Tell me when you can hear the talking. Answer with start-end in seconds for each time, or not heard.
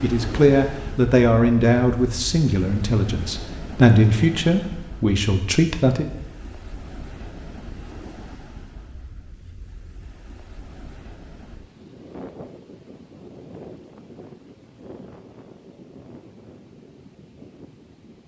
0.0-6.0.